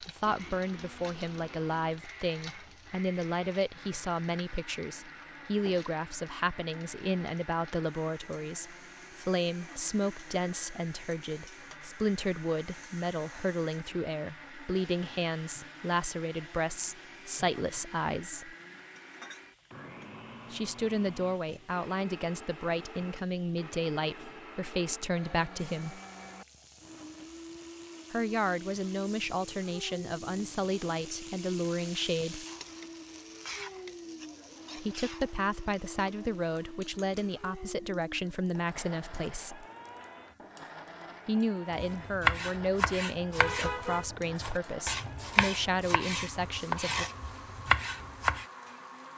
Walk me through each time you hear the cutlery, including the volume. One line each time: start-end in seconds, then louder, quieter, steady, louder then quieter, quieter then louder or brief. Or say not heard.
not heard.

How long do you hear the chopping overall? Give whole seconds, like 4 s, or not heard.
7 s.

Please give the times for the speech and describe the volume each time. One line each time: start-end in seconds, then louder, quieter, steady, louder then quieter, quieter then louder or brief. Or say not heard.
0.0-18.6 steady
20.5-26.0 steady
28.1-32.5 steady
34.8-39.6 steady
41.2-47.0 steady.